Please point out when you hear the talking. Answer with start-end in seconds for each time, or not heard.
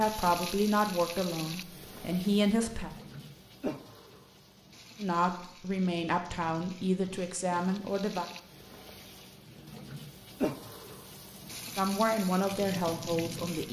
0.0-2.9, 5.0-8.2, 11.8-13.6.